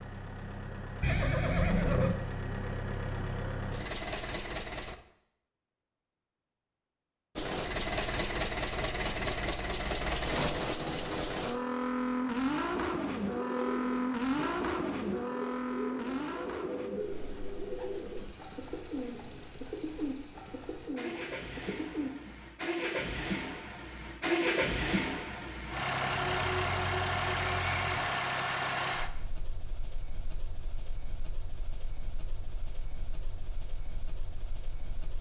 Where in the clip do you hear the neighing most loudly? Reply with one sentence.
The loudest moment of the neighing is at 2 seconds.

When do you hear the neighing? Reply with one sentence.
You can hear the neighing from 1.0 to 2.1 s and from 26.1 to 28.2 s.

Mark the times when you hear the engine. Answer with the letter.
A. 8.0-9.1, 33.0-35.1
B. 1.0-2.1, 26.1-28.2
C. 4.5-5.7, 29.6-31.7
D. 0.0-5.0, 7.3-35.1
D.